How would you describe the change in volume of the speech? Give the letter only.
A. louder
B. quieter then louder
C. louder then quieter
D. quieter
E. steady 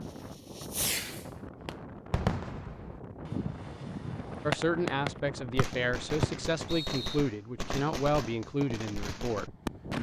E.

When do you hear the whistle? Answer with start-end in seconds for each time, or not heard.
5.5-7.2.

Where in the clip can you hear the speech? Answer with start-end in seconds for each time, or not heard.
4.5-9.9.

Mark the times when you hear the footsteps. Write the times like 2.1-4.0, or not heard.
not heard.